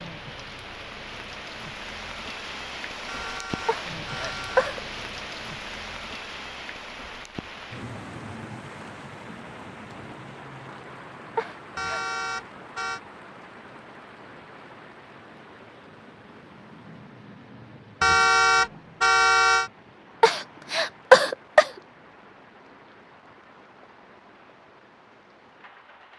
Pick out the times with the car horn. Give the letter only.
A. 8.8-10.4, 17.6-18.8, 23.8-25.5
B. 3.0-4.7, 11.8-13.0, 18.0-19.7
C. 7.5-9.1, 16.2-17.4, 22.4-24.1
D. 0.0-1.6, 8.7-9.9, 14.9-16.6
B.